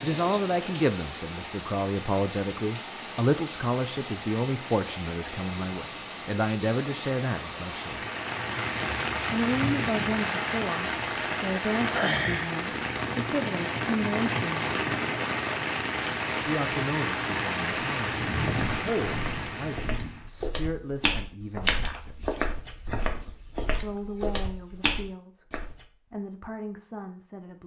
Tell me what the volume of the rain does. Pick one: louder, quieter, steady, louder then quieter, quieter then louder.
louder.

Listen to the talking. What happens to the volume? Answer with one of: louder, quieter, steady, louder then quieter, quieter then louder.
quieter.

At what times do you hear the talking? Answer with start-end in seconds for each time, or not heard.
0.0-8.0, 9.2-14.7, 16.4-22.3, 23.8-27.6.